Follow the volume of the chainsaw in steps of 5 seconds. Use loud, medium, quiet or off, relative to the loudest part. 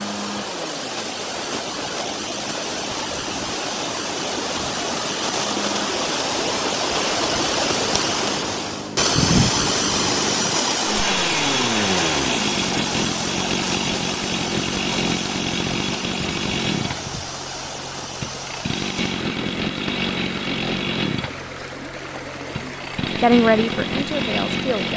quiet, medium, loud, loud, loud.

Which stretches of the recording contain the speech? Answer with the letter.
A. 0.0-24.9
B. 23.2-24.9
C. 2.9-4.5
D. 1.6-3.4
B.